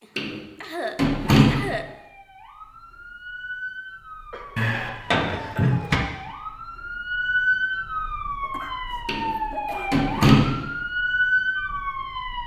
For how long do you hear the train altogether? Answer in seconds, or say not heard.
not heard.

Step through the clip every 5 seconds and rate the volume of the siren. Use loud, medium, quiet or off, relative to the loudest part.
quiet, loud, loud.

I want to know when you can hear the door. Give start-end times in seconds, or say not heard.
0.1-1.7, 4.5-6.0, 9.1-10.6.